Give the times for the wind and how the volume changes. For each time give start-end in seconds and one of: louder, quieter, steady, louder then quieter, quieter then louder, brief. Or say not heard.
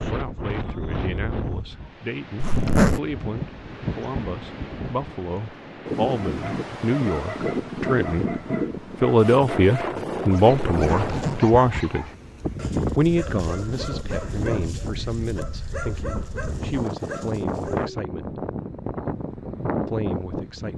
0.0-20.7 steady.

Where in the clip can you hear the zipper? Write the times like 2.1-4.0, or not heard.
2.4-3.0, 10.7-11.6.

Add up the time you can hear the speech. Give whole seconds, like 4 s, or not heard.
18 s.